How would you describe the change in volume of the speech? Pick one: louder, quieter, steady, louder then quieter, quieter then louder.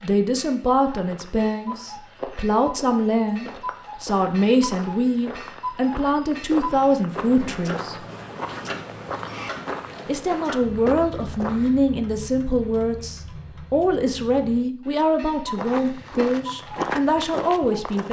steady.